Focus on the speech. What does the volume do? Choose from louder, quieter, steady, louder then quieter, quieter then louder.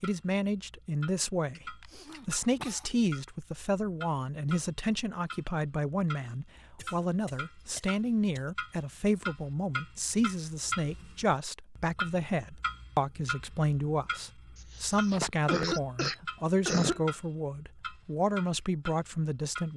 steady.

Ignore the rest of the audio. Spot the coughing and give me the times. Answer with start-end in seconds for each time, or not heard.
1.6-2.9, 6.8-8.6, 14.6-17.0.